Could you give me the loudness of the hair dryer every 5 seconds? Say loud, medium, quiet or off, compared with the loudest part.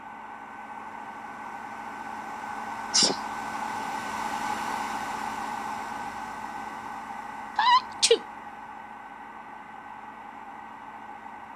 loud, loud, medium.